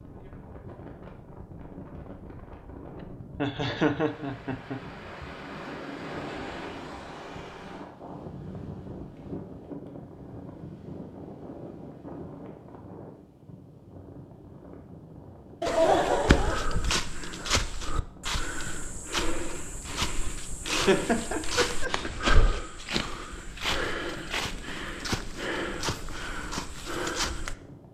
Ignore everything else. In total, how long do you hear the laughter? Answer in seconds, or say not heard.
4 s.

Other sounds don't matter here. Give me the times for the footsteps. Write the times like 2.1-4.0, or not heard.
15.7-27.6.